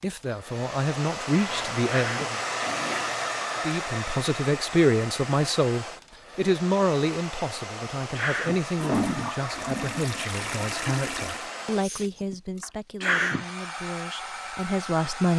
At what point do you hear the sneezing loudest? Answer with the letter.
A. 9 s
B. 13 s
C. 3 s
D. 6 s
B.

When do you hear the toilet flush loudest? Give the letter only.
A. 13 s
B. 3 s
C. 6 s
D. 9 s
D.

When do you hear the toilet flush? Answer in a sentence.
You can hear the toilet flush from 1.3 to 3.4 s and from 8.8 to 11.5 s.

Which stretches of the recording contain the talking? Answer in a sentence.
The talking can be heard from 0.0 to 2.4 s and from 3.6 to 15.3 s.